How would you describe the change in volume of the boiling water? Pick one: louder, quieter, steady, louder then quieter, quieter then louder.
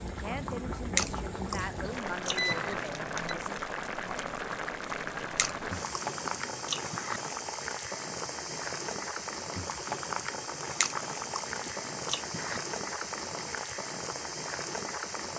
steady.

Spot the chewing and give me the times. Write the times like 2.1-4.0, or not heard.
0.9-2.8, 5.3-7.2, 10.8-12.6.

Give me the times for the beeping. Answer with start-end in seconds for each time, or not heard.
2.4-3.4.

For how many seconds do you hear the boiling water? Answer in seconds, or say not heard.
15 s.